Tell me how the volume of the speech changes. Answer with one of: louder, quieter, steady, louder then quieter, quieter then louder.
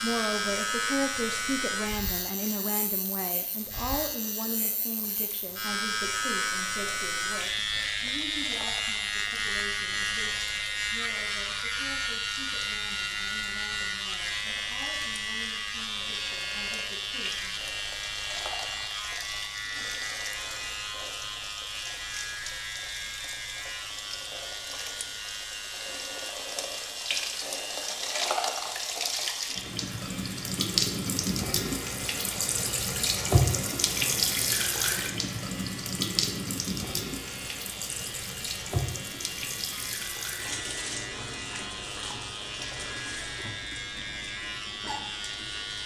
quieter.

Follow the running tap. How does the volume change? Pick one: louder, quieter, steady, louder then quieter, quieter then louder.
louder then quieter.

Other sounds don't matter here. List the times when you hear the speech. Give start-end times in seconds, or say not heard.
0.0-17.6.